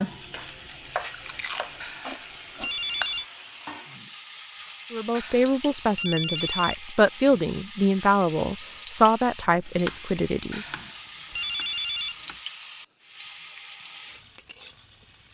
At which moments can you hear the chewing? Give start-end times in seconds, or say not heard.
0.0-3.2.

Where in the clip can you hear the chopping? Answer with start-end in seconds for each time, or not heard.
0.3-1.8, 9.6-12.4.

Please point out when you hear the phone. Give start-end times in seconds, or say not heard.
1.8-3.2, 5.1-6.8, 10.5-12.2.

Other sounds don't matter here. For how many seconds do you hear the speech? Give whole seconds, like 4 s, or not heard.
6 s.